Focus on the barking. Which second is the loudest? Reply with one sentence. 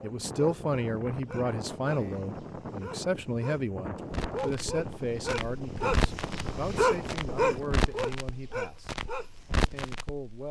The loudest moment of the barking is at 7 seconds.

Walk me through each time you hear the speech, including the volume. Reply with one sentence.
The speech can be heard from 0.0 to 8.9 s, getting quieter; and briefly from 9.6 to 10.4 s.